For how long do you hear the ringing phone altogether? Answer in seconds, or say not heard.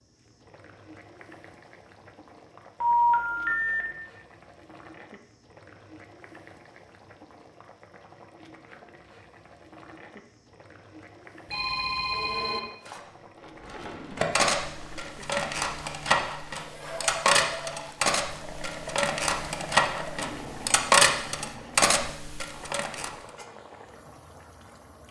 3 s.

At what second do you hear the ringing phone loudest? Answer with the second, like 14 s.
3 s.